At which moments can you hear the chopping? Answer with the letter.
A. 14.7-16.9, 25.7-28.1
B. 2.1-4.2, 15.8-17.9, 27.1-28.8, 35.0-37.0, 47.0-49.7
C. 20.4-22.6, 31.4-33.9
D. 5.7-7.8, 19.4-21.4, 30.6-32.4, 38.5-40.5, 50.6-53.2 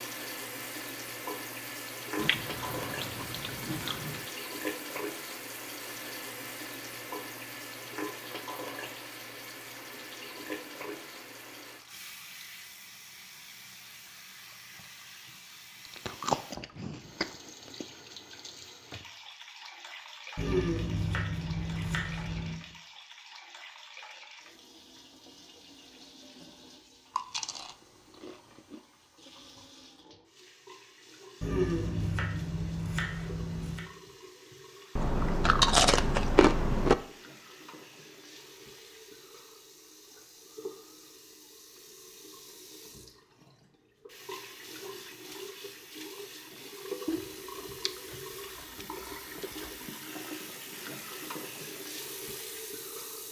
C.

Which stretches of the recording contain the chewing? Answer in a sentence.
The chewing can be heard from 2.1 to 4.2 s, from 15.8 to 17.9 s, from 27.1 to 28.8 s, from 35.0 to 37.0 s and from 47.0 to 49.7 s.